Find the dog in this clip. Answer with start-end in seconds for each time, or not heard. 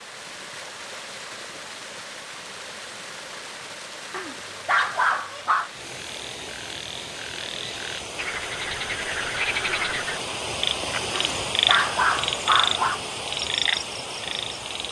4.1-5.7, 11.1-13.0.